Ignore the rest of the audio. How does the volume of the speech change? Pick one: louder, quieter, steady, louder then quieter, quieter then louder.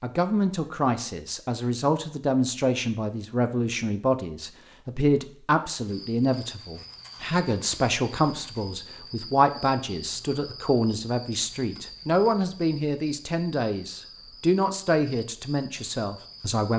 steady.